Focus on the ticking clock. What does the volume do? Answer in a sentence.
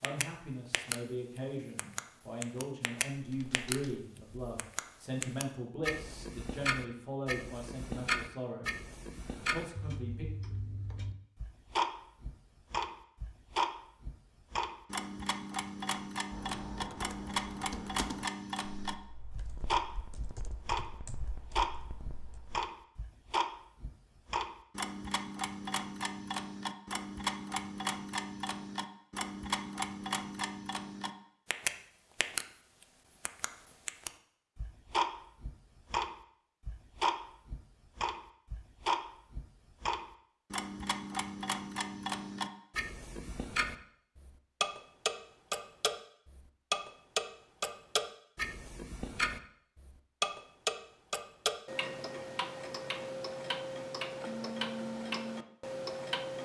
The volume of the ticking clock stays about the same.